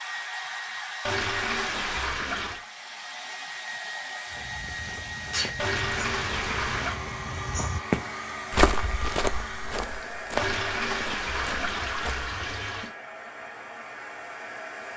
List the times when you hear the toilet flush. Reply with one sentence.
The toilet flush can be heard from 1.0 to 2.6 s, from 5.5 to 7.0 s and from 10.3 to 12.9 s.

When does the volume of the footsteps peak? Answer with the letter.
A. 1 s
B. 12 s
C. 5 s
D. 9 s
D.